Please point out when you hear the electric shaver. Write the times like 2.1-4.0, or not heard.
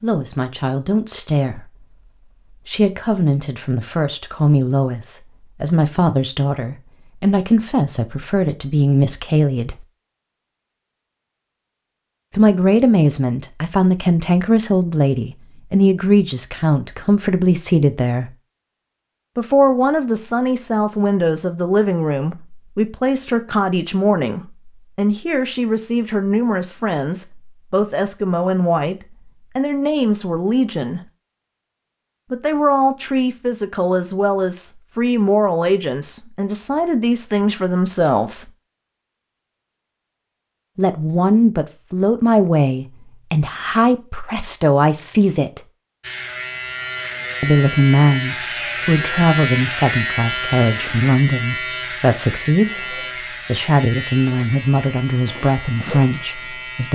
46.0-56.9.